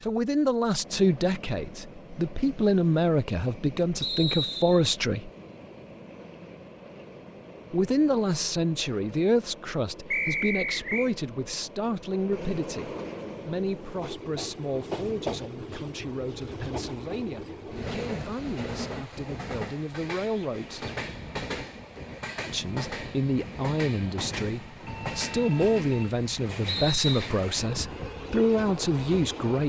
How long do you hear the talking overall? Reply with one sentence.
You can hear the talking for 26 seconds altogether.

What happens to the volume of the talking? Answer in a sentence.
The volume of the talking goes down, then up.